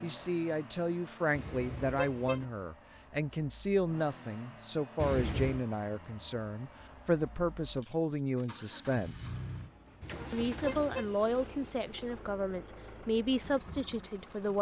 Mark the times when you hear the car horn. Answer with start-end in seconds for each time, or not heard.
1.3-2.5, 5.0-5.7, 10.0-11.2.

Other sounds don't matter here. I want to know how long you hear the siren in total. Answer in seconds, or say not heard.
not heard.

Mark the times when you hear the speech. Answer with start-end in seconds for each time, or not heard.
0.0-9.3, 10.3-14.5.